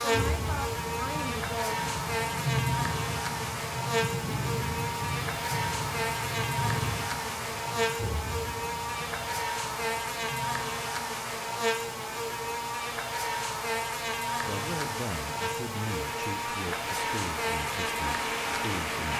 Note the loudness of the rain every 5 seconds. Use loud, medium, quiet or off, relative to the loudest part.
loud, loud, quiet, loud.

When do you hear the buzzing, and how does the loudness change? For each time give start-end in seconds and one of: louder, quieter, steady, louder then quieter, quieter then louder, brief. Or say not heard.
0.0-19.1 steady.